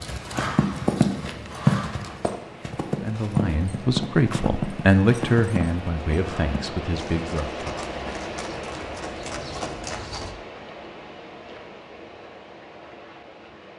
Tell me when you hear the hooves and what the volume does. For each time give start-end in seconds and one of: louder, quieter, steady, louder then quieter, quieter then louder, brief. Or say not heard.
0.0-10.3 quieter.